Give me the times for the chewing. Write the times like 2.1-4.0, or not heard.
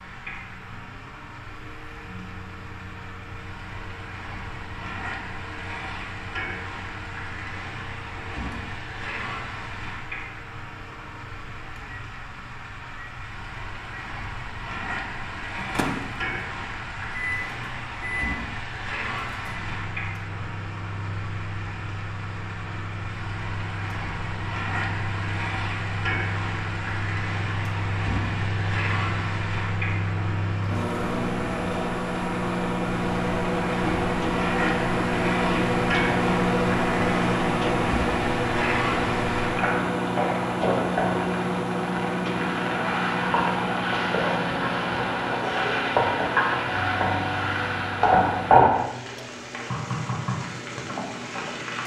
not heard.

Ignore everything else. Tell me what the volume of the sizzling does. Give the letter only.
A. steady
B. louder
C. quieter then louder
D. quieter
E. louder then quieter
B.